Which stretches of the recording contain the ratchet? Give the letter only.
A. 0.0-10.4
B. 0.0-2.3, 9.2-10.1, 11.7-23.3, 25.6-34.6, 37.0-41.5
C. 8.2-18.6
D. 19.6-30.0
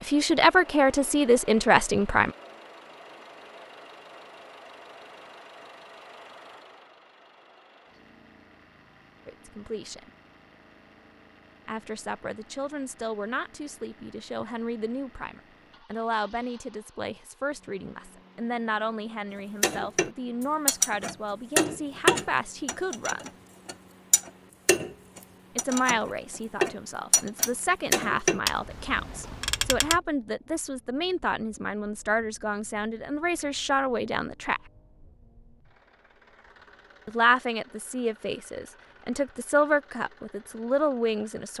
D.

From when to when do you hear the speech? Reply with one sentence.
You can hear the speech from 0.0 to 2.3 s, from 9.2 to 10.1 s, from 11.7 to 23.3 s, from 25.6 to 34.6 s and from 37.0 to 41.5 s.